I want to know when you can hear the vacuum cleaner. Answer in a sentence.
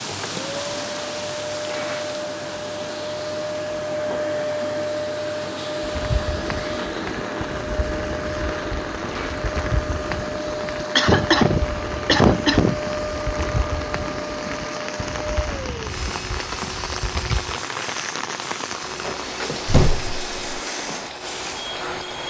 You can hear the vacuum cleaner from 0.0 to 22.2 s.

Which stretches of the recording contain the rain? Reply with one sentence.
The rain can be heard from 0.0 to 22.2 s.